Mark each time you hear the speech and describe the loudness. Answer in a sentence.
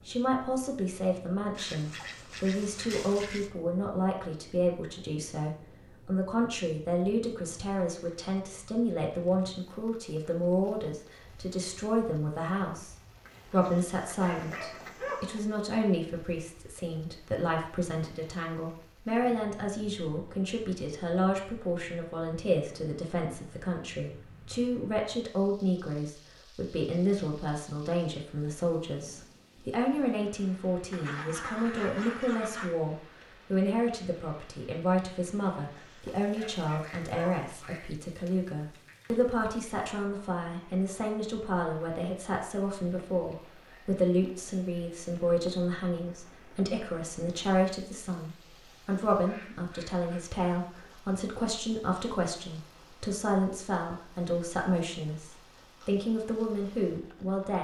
The speech can be heard from 0.1 to 57.5 s, at a steady volume.